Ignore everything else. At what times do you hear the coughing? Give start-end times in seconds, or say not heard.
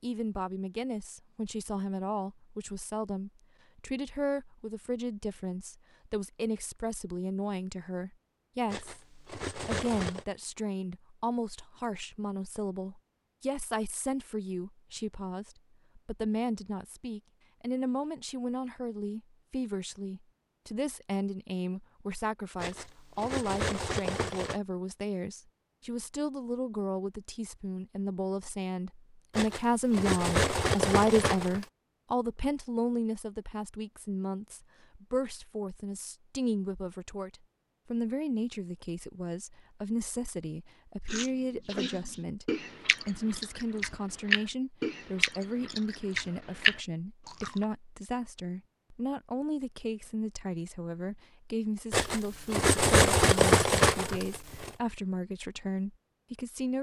not heard.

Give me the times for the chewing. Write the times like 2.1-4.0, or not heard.
41.0-47.6.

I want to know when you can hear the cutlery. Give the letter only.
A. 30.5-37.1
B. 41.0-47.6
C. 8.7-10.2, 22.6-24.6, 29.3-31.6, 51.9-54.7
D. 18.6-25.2
C.